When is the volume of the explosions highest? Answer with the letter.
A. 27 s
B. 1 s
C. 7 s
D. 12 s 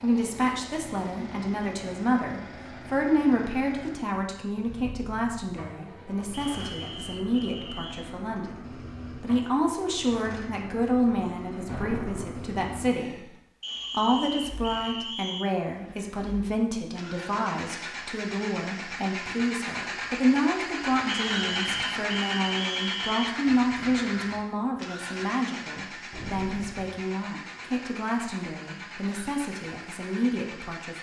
D.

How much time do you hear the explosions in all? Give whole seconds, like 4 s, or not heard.
2 s.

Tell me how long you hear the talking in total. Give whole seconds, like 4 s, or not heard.
30 s.